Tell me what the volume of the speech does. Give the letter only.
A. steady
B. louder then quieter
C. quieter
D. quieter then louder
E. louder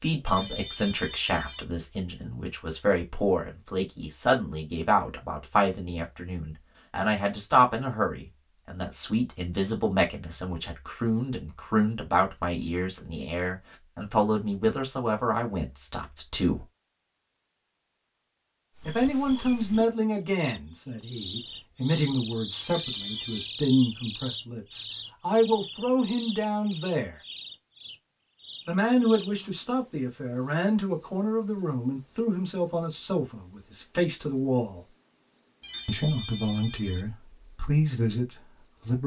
A.